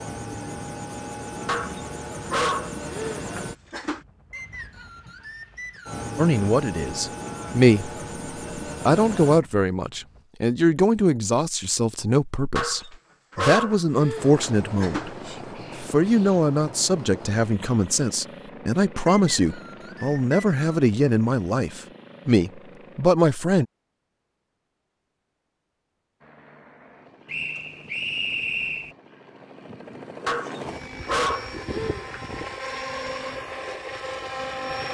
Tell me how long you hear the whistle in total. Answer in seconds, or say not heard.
5 s.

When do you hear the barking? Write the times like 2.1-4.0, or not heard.
1.4-4.0, 12.6-15.4, 30.2-32.2.